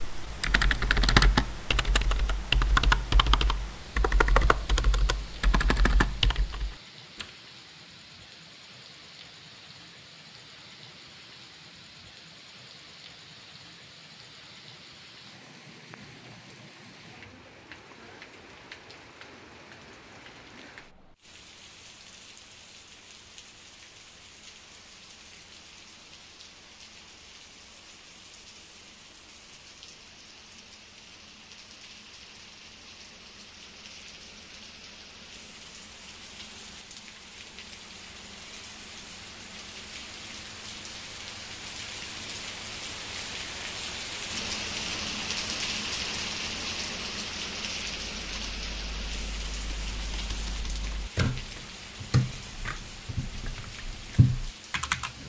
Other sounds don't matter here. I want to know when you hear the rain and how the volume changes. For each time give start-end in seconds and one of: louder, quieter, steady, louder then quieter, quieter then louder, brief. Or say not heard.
0.0-55.2 louder.